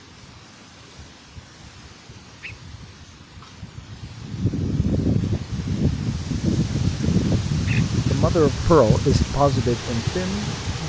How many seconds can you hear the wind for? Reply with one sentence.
You can hear the wind for 11 seconds altogether.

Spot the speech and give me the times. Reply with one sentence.
The speech can be heard from 8.0 to 10.8 s.